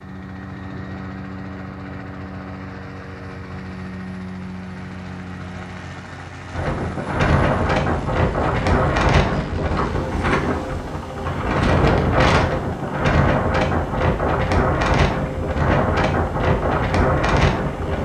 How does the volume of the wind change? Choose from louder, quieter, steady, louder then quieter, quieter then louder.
steady.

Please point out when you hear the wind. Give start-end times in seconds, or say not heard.
6.5-17.9.